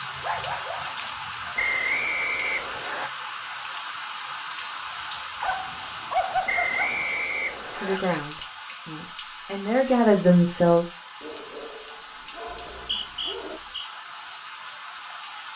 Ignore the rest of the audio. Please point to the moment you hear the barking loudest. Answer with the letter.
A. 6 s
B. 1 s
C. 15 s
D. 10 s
A.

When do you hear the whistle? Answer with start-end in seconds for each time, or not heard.
1.6-3.1, 6.5-8.0, 12.5-13.9.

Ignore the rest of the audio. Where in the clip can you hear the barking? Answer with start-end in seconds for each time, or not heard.
0.1-1.4, 5.4-7.2, 11.2-13.6.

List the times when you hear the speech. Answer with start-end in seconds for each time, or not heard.
7.6-10.9.